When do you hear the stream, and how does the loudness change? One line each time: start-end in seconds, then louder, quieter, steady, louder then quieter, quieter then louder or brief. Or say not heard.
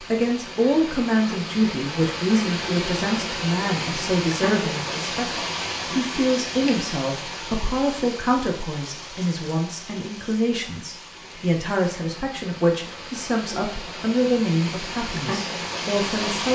0.0-16.5 quieter then louder.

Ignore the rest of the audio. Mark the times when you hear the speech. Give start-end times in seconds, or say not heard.
0.0-16.5.